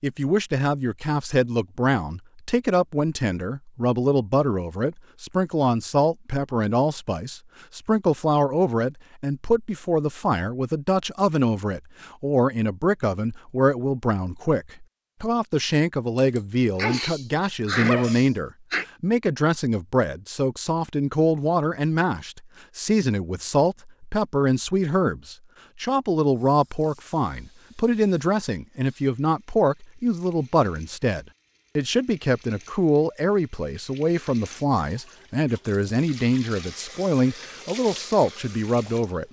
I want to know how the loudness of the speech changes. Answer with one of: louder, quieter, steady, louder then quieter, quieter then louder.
steady.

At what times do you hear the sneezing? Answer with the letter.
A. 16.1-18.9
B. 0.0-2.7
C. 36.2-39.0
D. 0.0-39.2
A.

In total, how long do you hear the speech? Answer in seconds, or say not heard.
39 s.